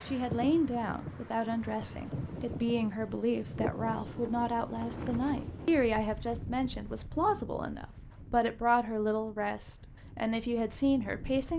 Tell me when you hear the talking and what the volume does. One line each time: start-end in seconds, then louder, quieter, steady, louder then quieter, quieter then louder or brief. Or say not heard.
0.1-11.5 steady.